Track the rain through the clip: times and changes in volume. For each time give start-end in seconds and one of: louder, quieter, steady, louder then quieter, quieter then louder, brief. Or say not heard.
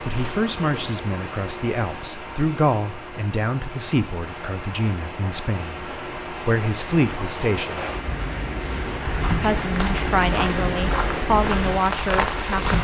0.0-12.7 louder.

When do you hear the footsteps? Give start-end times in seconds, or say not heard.
9.0-12.7.